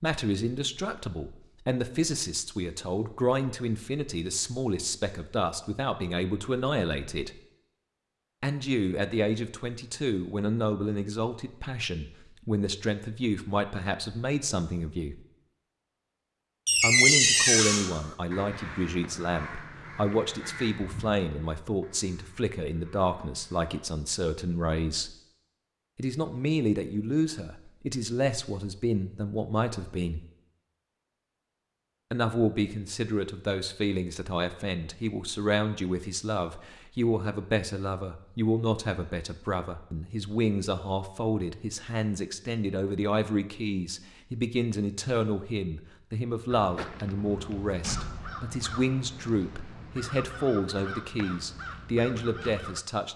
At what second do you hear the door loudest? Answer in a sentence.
The volume of the door peaks at 17 seconds.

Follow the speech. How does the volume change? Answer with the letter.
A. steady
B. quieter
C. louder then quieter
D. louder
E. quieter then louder
A.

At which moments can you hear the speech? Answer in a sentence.
You can hear the speech from 0.0 to 7.4 s, from 8.4 to 15.2 s, from 16.8 to 25.1 s, from 25.9 to 30.2 s and from 32.1 to 53.1 s.